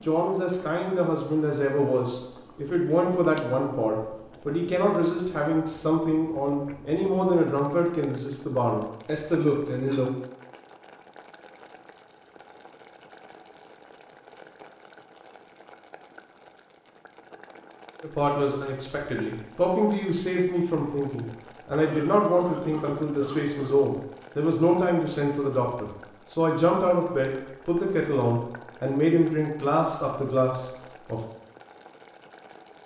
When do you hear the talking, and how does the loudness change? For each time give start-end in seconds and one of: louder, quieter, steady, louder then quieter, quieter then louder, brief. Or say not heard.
0.0-10.1 steady
18.0-31.2 steady.